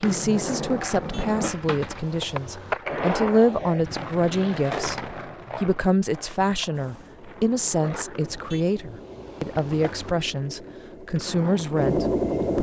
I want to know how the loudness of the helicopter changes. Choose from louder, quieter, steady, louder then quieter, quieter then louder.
louder.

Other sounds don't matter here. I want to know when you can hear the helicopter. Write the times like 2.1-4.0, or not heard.
6.7-12.5.